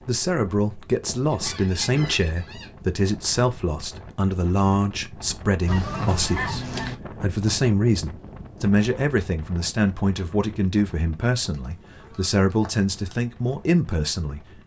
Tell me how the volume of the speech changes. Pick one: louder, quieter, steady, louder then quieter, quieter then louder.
steady.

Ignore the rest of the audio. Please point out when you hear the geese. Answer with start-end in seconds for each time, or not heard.
1.0-2.8, 5.7-7.0, 11.5-13.2.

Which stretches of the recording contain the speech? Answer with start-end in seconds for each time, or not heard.
0.1-14.6.